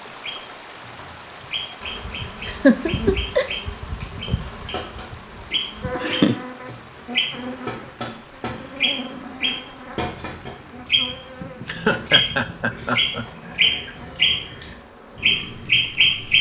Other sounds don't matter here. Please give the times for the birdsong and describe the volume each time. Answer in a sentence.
You can hear the birdsong from 0.0 to 16.3 s, getting louder.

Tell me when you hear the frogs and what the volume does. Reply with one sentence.
The frogs can't be heard in this clip.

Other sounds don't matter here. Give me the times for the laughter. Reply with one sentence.
You can hear the laughter from 2.5 to 3.5 s, from 5.5 to 6.4 s and from 11.6 to 13.9 s.